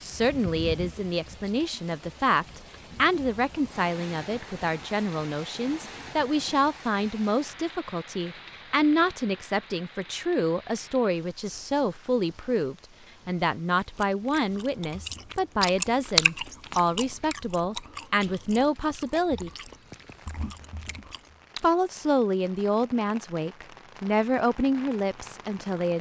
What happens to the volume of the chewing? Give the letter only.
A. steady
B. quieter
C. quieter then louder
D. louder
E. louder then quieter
E.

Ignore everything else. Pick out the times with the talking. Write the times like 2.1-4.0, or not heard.
0.0-19.5, 21.6-25.9.